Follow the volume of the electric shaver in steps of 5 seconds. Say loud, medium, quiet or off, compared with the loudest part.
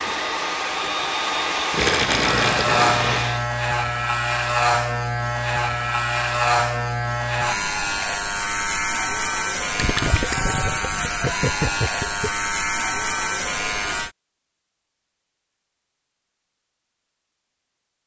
loud, loud, loud, off.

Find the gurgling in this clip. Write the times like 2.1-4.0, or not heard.
1.7-3.3, 9.8-12.3.